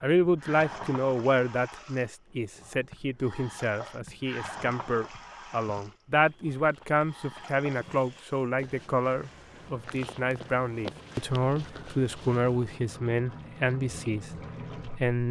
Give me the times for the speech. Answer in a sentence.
The speech can be heard from 0.0 to 15.2 s.